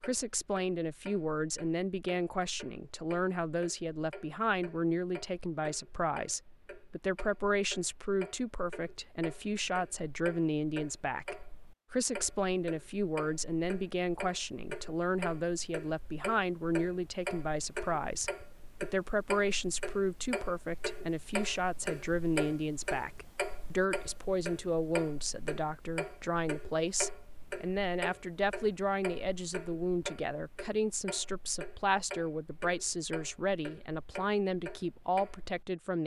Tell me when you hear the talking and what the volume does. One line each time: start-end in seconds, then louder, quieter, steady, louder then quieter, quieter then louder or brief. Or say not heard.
0.0-36.0 steady.